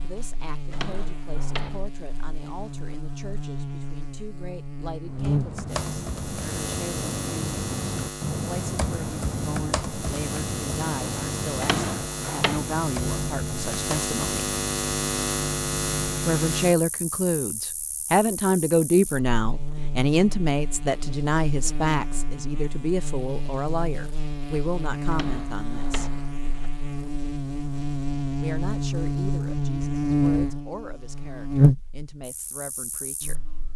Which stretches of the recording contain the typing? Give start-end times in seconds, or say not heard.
5.0-16.1.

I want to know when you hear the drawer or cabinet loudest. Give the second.
12 s.